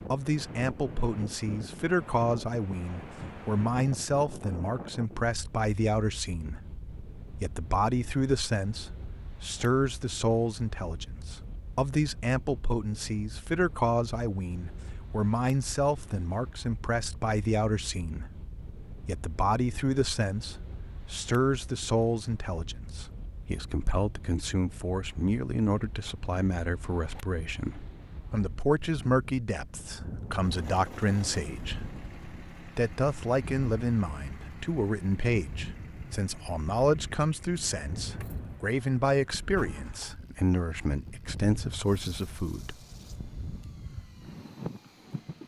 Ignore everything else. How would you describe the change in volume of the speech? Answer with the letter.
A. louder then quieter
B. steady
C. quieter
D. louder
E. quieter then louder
B.